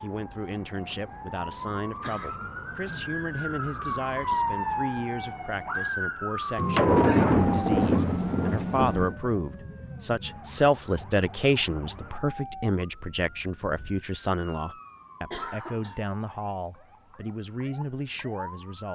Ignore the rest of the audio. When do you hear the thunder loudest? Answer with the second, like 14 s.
7 s.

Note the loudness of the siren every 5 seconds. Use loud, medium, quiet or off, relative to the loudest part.
loud, loud, quiet, quiet.